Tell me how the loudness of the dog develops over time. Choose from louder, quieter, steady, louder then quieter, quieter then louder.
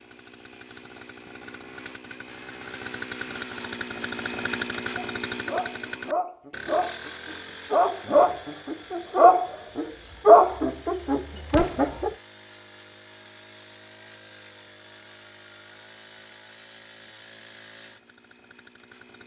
louder then quieter.